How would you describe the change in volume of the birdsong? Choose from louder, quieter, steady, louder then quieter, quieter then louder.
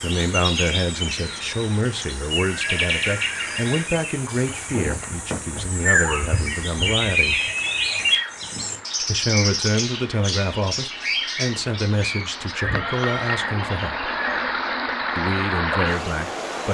quieter.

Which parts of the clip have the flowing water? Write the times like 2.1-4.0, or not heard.
0.0-16.6.